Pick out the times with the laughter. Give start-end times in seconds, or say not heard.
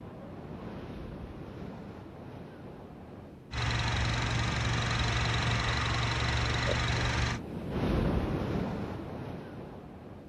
not heard.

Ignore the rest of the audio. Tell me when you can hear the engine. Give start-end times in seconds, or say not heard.
3.5-7.4.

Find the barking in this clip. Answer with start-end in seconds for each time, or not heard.
not heard.